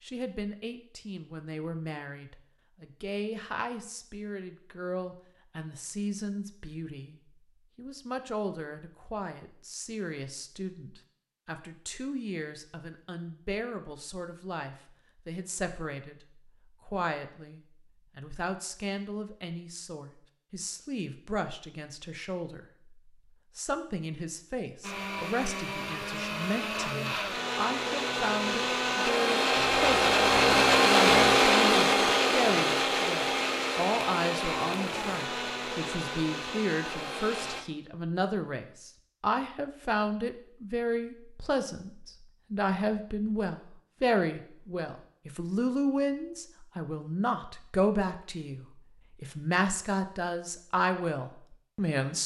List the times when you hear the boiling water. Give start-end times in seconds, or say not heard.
not heard.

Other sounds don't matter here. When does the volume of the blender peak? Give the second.
31 s.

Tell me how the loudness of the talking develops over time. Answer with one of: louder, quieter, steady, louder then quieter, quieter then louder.
louder.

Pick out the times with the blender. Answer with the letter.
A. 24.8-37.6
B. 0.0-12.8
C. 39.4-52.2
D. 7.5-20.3
A.